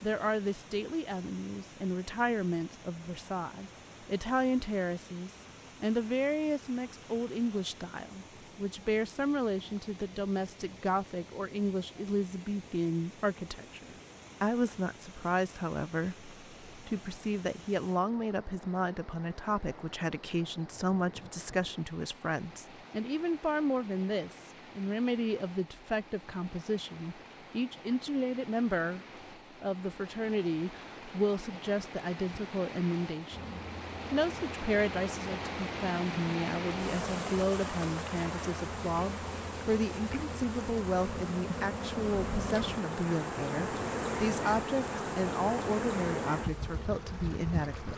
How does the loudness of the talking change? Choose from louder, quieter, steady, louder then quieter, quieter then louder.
steady.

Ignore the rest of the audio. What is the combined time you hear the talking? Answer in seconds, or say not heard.
48 s.